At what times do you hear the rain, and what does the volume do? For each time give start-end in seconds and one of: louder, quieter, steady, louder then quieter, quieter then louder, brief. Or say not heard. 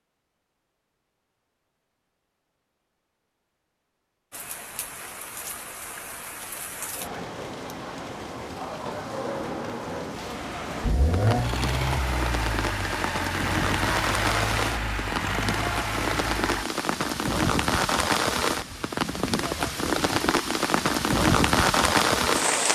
4.3-22.6 louder.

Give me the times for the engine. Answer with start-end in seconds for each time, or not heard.
10.8-16.6.